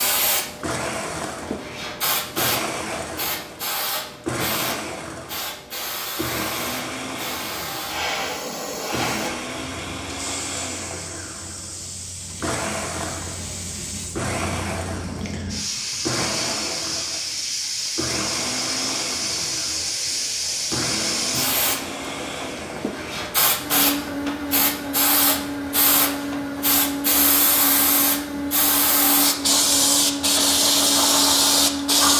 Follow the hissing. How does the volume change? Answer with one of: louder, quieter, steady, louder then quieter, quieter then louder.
louder.